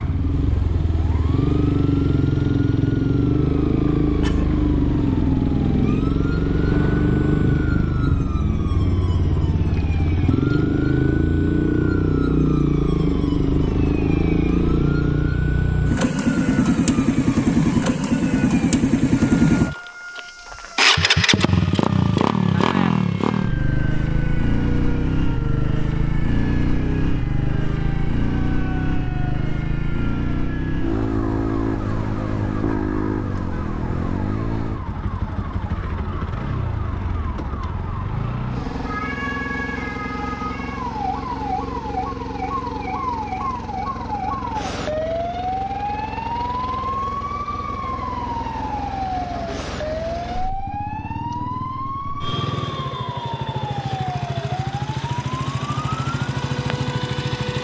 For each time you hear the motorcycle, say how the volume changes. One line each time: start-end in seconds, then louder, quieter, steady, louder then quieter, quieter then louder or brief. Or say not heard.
0.0-57.5 quieter.